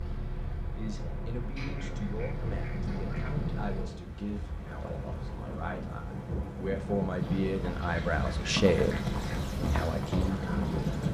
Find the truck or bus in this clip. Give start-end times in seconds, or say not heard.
0.0-3.9.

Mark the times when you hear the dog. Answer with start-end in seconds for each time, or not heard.
not heard.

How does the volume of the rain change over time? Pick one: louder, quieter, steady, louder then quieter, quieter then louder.
louder.